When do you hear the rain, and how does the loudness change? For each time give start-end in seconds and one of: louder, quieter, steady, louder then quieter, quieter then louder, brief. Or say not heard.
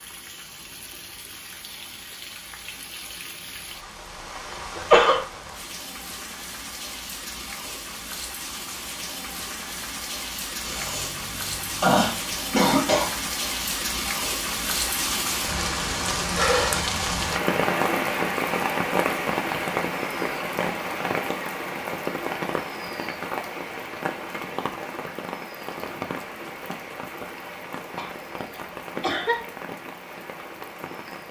0.0-31.2 louder then quieter.